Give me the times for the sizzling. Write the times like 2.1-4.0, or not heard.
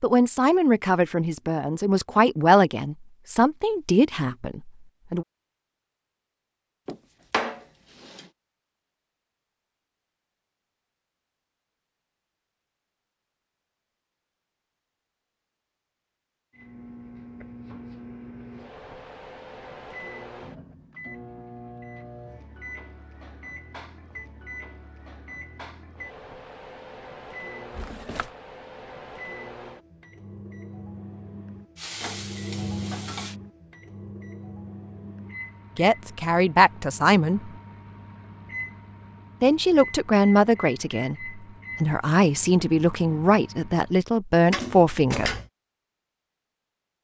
31.8-33.4.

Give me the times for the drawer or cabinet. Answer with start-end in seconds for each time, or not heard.
6.8-8.2, 27.7-28.3, 44.5-45.5.